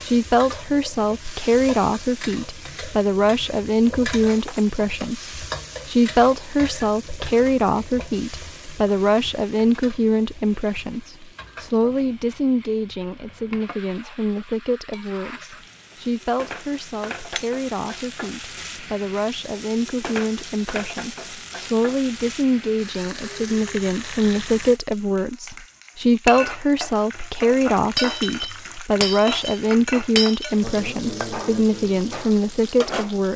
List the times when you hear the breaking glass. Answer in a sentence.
The breaking glass can be heard from 4.2 to 4.7 s and from 27.9 to 30.5 s.